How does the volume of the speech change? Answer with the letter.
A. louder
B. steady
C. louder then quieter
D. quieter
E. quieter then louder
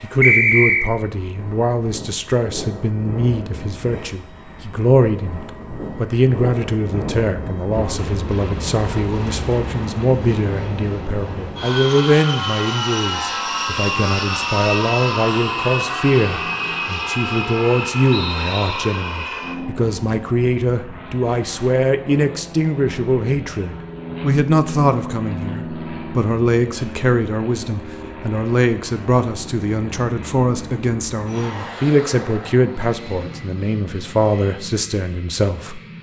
B.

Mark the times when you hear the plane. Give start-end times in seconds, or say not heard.
0.0-35.9.